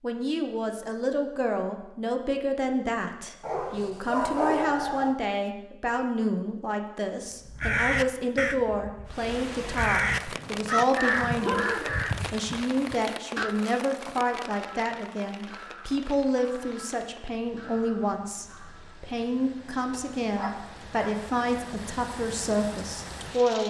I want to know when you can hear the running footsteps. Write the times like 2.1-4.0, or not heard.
not heard.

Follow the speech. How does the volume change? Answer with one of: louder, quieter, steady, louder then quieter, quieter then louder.
steady.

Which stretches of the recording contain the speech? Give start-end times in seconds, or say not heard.
0.0-11.7, 12.3-23.6.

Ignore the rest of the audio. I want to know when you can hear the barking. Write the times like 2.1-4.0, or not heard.
3.4-5.2, 11.4-12.0, 19.9-21.1.